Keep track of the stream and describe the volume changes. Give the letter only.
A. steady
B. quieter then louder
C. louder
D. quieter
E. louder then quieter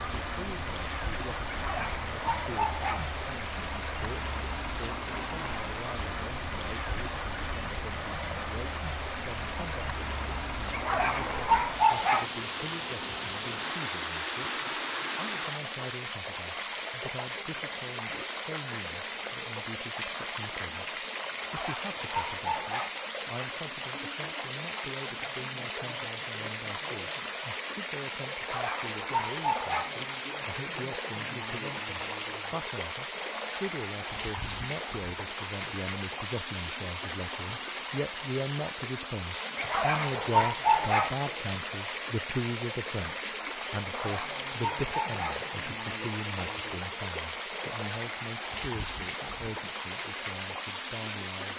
A.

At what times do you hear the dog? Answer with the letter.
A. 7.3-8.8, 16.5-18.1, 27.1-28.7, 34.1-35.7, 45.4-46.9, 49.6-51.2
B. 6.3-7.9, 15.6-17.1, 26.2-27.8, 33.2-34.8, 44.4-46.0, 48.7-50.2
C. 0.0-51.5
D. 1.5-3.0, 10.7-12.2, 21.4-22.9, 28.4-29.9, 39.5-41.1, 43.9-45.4
D.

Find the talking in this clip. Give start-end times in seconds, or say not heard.
0.0-51.5.